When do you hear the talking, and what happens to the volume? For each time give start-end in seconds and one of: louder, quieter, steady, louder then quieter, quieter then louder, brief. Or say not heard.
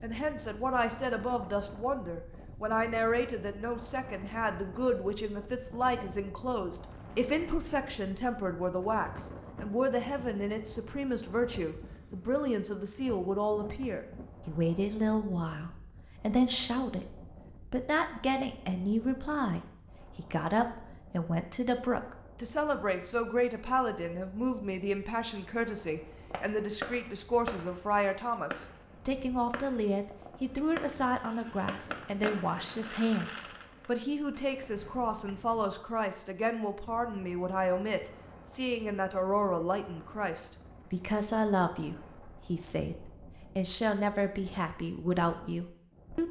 0.0-46.2 steady.